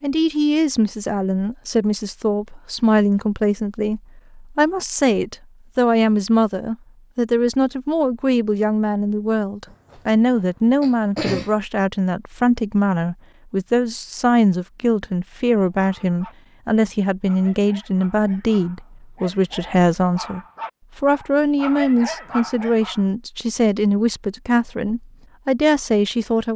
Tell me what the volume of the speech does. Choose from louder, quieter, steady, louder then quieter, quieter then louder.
steady.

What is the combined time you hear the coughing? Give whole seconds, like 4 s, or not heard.
2 s.